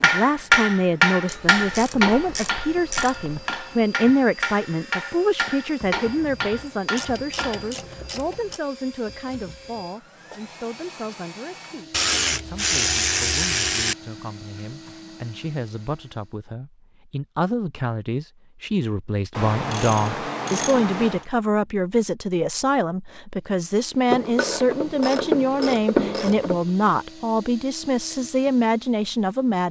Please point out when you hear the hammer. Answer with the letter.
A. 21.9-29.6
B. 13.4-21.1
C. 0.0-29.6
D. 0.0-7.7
D.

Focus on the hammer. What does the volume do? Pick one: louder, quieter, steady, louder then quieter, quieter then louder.
quieter.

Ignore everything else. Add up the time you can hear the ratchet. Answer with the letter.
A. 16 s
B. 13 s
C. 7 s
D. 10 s
D.